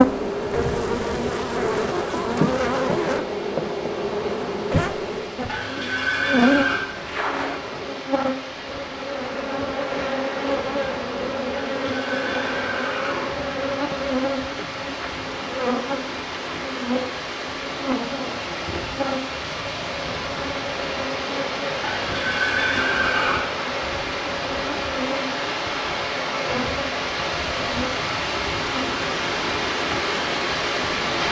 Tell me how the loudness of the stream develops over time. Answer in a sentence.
The loudness of the stream goes up.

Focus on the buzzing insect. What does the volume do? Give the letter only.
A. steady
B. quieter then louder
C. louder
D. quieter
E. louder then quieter
D.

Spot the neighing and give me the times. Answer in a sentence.
You can hear the neighing from 5.5 to 6.8 s, from 11.8 to 13.3 s and from 21.8 to 23.4 s.